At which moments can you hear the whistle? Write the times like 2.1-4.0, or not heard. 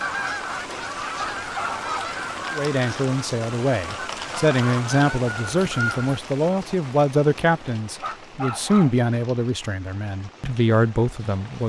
not heard.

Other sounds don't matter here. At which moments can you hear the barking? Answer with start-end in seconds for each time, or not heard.
1.1-2.1, 8.0-8.9.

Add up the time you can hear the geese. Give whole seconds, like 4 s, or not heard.
6 s.